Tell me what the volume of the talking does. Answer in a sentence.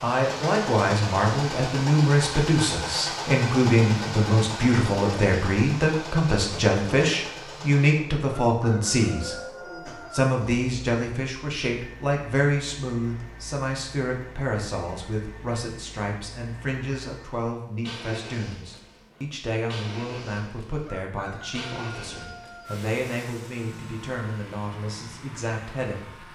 The loudness of the talking goes down.